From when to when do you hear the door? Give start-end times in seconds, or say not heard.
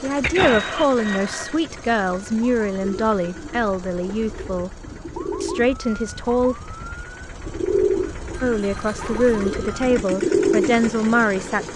not heard.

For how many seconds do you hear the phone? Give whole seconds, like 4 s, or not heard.
3 s.